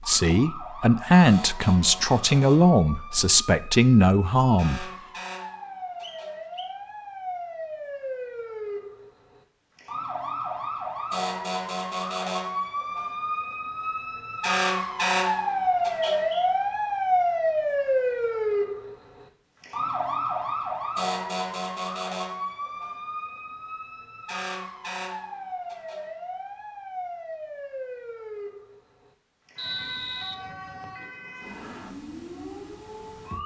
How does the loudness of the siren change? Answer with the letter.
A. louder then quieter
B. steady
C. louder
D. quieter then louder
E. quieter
A.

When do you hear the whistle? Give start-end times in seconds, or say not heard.
6.0-6.8, 15.8-16.5, 29.6-31.1.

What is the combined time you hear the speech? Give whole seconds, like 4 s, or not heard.
5 s.